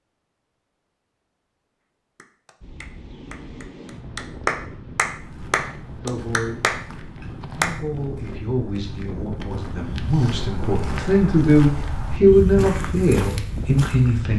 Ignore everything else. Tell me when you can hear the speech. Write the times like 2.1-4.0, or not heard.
6.0-14.3.